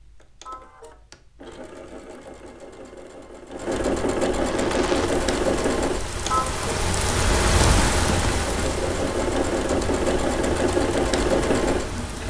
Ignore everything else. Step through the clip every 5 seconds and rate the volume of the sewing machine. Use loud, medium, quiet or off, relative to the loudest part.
medium, loud, loud.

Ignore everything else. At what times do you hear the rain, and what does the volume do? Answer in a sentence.
You can hear the rain from 4.3 to 12.2 s, getting louder then quieter.